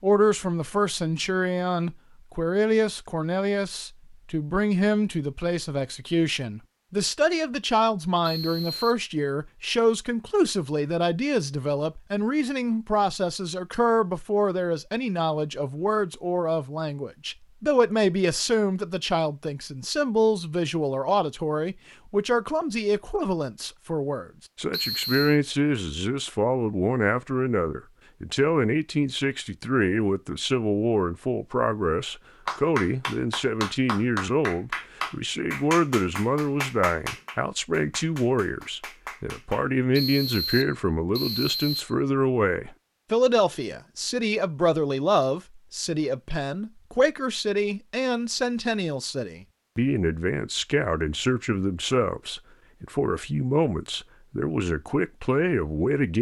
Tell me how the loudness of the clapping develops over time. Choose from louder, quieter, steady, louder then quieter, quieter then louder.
quieter.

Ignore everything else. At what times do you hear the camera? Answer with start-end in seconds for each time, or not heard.
not heard.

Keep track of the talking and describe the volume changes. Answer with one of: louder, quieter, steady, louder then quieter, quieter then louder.
steady.